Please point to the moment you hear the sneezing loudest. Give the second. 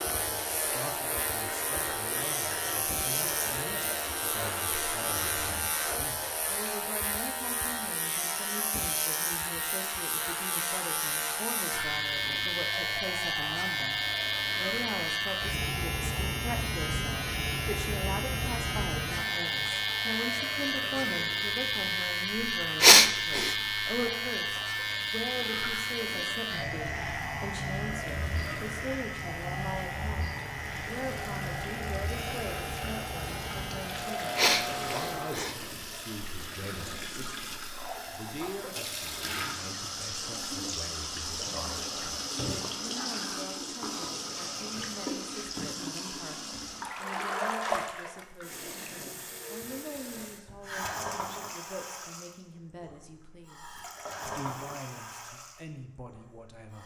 23 s.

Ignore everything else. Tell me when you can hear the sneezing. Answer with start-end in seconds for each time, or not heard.
22.8-23.6, 34.4-35.5.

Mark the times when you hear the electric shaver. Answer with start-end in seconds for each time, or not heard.
0.0-35.4.